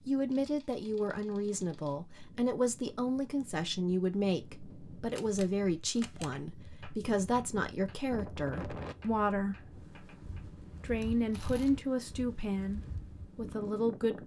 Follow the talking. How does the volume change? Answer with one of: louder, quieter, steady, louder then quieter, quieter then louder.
steady.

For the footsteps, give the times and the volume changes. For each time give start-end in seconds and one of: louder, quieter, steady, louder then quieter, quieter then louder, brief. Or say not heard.
not heard.